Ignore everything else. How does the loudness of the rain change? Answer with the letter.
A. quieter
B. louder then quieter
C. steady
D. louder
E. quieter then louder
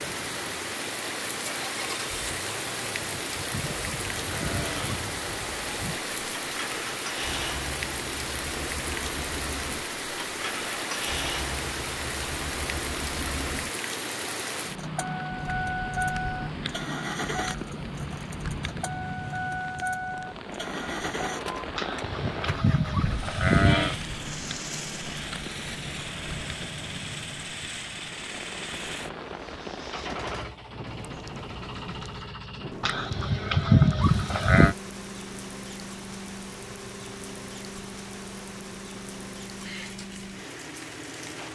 A.